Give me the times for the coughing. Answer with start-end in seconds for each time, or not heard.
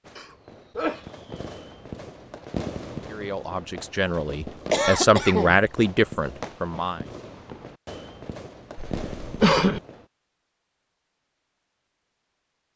0.1-1.1, 4.7-5.6, 8.8-9.8.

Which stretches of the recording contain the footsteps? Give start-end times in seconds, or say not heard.
not heard.